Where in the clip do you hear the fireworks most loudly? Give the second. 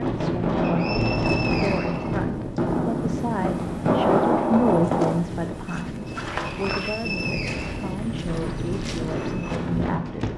4 s.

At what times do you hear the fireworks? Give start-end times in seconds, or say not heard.
0.0-5.2.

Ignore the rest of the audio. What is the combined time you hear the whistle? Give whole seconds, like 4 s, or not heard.
4 s.